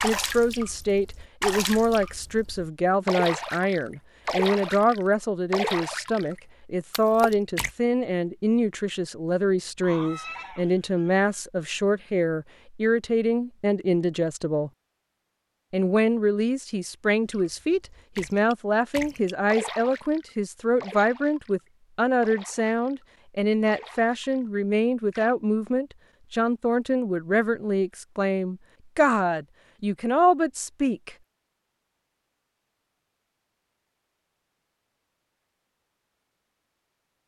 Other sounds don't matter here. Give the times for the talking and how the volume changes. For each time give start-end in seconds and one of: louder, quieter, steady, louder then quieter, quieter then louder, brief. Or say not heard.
0.0-14.7 steady
15.7-31.1 steady.